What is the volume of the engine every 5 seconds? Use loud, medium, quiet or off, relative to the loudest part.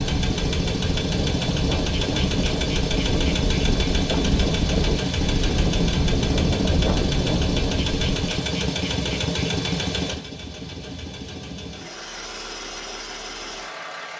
loud, loud, medium.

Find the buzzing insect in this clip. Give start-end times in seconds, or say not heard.
not heard.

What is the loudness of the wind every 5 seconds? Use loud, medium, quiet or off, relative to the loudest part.
loud, loud, off.